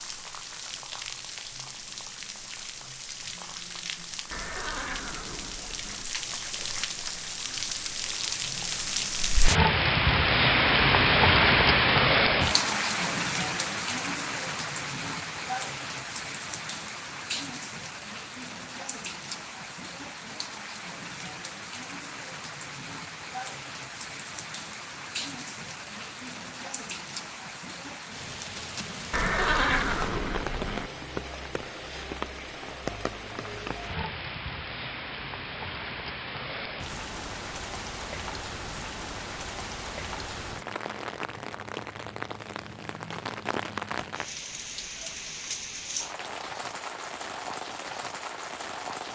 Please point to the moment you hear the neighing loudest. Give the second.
30 s.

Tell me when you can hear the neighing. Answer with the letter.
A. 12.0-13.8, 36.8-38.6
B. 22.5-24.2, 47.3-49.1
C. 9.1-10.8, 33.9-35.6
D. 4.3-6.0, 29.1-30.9
D.